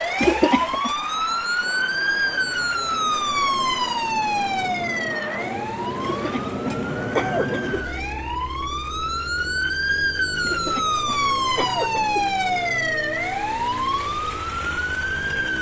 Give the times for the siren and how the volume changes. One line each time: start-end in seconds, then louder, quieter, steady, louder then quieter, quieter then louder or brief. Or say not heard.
0.0-15.5 quieter then louder.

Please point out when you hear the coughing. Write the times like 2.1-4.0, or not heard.
0.1-0.9, 6.0-7.8, 10.4-12.2.